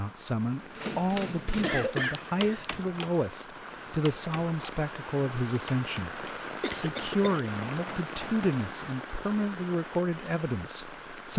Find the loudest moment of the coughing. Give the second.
2 s.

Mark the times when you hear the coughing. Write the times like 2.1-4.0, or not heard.
1.6-2.8, 6.6-7.5.